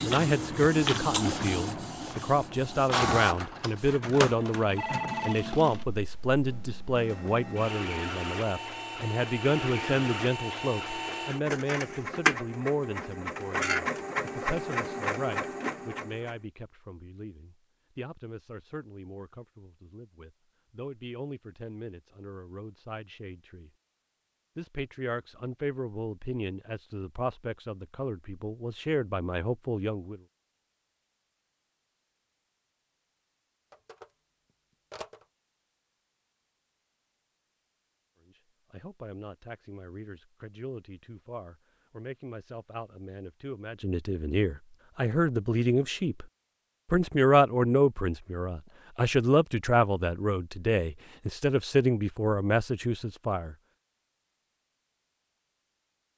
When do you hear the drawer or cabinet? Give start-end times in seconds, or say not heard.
not heard.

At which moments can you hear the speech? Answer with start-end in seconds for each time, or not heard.
0.0-23.7, 24.6-30.2, 38.2-46.2, 46.9-53.5.